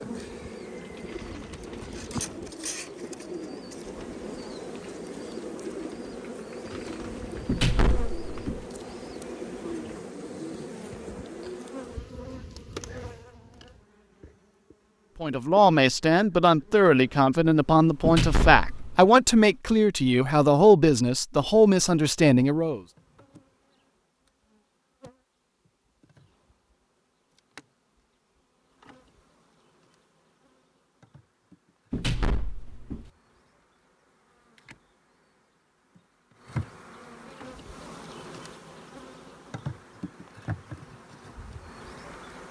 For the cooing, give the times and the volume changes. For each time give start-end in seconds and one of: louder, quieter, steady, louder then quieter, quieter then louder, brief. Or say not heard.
0.3-11.5 steady.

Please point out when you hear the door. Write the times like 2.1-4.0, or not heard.
7.5-8.7, 18.1-19.1, 31.9-33.1.